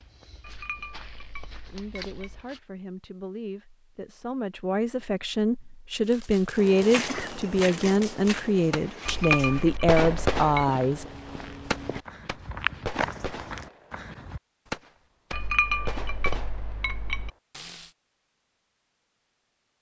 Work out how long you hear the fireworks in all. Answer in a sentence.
The fireworks can be heard for 12 seconds in total.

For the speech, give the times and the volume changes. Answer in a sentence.
The speech can be heard from 1.7 to 11.1 s, getting louder.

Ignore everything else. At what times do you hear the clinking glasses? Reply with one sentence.
The clinking glasses can be heard from 0.4 to 2.5 s, from 9.1 to 10.7 s and from 15.3 to 17.3 s.